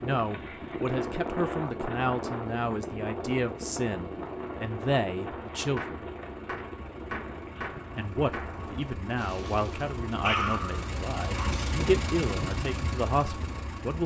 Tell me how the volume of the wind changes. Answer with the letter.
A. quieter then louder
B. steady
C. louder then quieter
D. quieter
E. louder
D.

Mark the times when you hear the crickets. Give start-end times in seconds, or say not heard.
not heard.